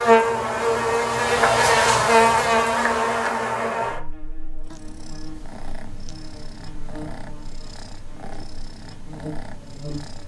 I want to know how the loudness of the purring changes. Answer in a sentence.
The loudness of the purring stays about the same.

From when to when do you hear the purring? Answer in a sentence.
The purring can be heard from 4.6 to 10.2 s.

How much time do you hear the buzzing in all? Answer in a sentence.
You can hear the buzzing for 10 seconds altogether.